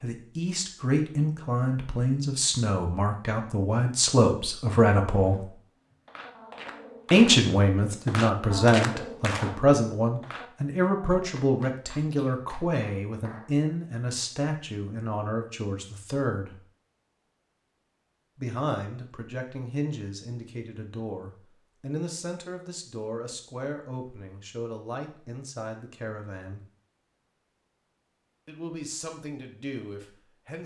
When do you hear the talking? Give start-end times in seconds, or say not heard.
0.0-5.5, 7.1-16.6, 18.4-26.6, 28.4-30.6.